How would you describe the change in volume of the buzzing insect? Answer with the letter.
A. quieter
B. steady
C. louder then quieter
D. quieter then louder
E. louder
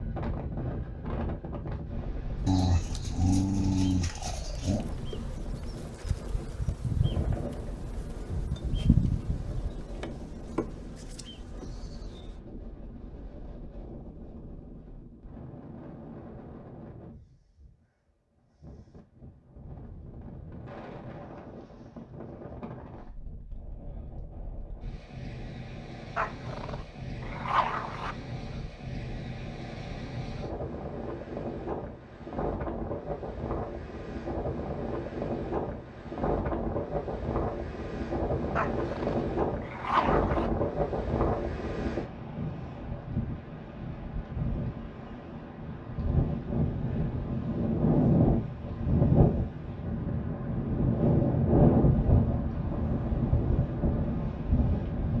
C.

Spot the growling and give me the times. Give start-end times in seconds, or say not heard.
2.5-4.8, 26.1-28.1, 38.5-40.5.